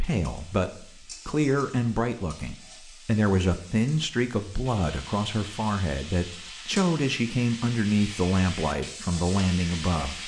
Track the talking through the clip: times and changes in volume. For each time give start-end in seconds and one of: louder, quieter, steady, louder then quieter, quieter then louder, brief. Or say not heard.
0.0-10.2 steady.